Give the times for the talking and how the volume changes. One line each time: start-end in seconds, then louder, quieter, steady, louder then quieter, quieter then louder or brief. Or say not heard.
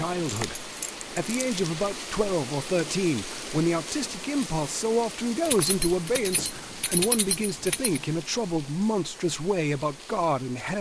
0.0-10.7 steady.